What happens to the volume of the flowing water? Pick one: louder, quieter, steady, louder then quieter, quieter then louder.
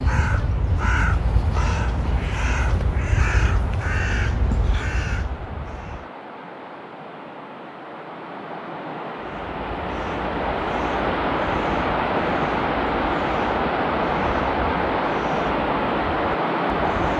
louder.